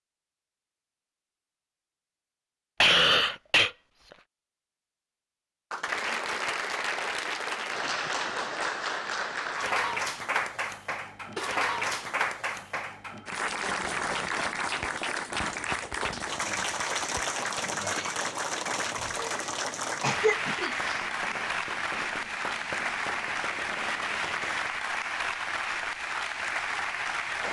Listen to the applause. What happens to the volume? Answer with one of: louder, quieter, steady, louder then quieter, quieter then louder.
steady.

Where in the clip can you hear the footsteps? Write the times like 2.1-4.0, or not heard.
not heard.